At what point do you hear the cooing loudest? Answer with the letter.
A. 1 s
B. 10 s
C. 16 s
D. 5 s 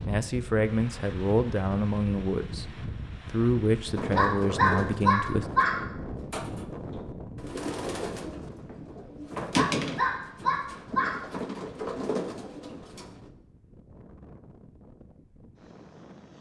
B.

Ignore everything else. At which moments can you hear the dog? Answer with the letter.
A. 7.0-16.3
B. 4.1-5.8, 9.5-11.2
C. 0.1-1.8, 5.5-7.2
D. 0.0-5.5
B.